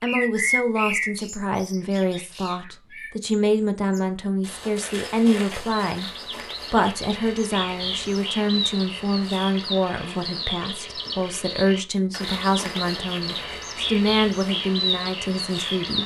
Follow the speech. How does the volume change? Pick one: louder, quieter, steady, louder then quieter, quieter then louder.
steady.